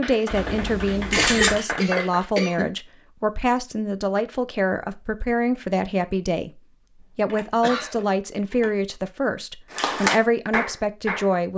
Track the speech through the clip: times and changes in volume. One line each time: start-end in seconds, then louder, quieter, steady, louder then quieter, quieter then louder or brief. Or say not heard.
0.0-11.5 steady.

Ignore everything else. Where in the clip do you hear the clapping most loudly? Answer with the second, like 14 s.
10 s.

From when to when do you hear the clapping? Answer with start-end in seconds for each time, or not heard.
0.0-2.3, 9.8-11.3.